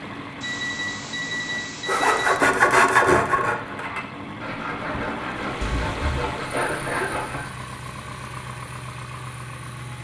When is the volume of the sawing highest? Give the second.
3 s.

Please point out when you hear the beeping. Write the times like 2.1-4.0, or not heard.
0.4-2.4, 5.6-6.2.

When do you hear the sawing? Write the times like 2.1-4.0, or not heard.
1.9-7.5.